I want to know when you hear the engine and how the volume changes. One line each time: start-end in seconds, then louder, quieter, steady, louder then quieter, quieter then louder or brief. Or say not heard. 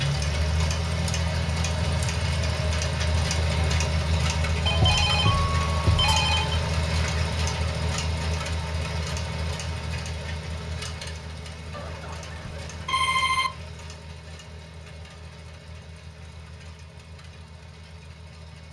0.0-18.6 quieter.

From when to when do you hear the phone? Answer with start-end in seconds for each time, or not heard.
4.7-6.6, 11.7-13.5.